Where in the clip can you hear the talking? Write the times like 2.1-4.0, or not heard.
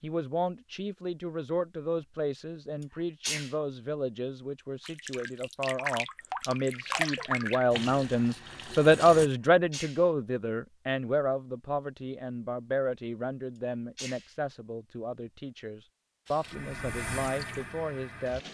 0.0-18.4.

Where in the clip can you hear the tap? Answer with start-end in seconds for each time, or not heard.
4.8-9.3, 16.2-18.4.